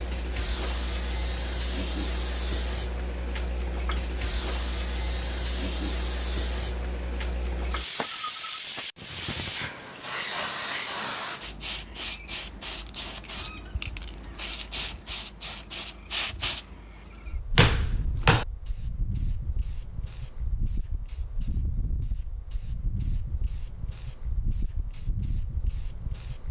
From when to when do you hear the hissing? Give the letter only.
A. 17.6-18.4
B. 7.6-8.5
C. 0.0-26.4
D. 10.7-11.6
C.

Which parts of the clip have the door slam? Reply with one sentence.
You can hear the door slam from 17.6 to 18.4 s.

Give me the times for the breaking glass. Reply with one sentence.
The breaking glass can't be heard in this clip.